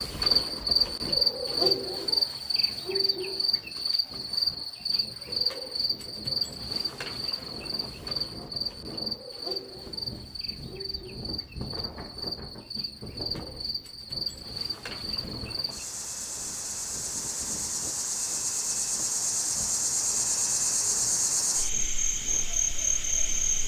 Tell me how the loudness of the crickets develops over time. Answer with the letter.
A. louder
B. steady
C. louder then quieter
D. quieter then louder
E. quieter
D.